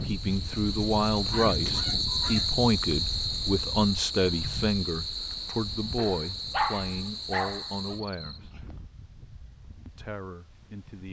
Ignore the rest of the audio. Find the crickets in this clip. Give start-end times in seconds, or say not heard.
0.0-8.4.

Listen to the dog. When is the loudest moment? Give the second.
7 s.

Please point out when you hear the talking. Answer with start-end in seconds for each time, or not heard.
0.0-8.5, 9.8-11.0.